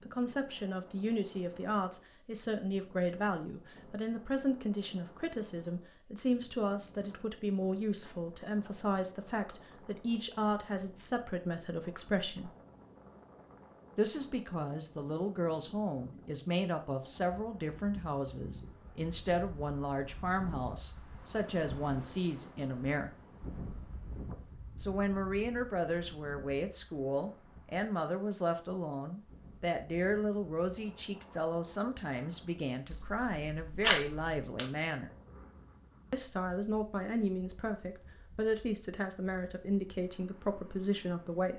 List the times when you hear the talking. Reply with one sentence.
You can hear the talking from 0.0 to 12.5 s, from 13.9 to 23.1 s, from 24.8 to 35.1 s and from 36.1 to 41.5 s.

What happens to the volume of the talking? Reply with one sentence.
The loudness of the talking stays about the same.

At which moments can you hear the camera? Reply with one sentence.
You can hear the camera from 32.9 to 34.6 s.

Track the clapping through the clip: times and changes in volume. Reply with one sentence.
You can't hear the clapping here.